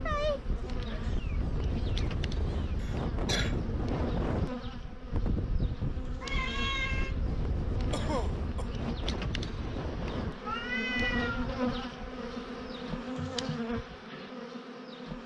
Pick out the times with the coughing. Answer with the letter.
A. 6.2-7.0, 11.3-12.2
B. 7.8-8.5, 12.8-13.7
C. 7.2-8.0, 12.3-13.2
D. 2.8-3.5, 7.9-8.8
D.